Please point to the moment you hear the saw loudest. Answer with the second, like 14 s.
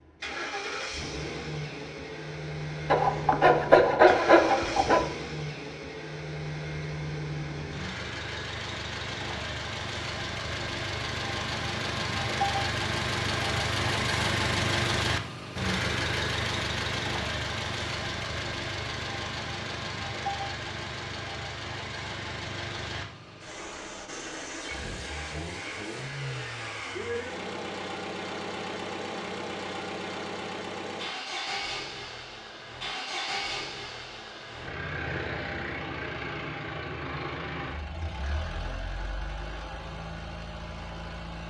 4 s.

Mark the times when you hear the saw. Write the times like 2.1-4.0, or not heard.
2.9-5.1.